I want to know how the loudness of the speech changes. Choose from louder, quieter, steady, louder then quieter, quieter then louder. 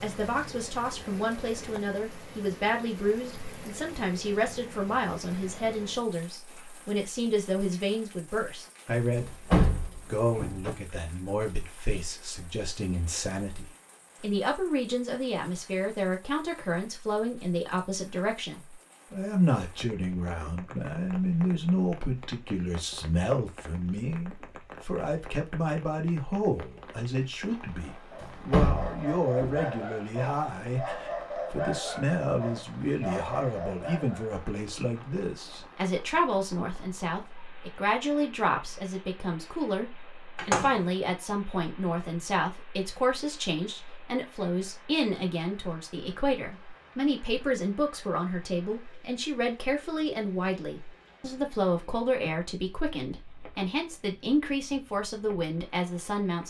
steady.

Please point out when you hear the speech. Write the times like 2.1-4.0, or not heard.
0.0-9.3, 10.1-56.4.